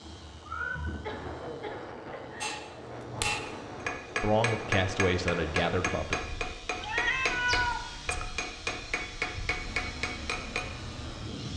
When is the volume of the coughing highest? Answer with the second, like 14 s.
1 s.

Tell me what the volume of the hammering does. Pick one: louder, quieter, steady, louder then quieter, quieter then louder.
steady.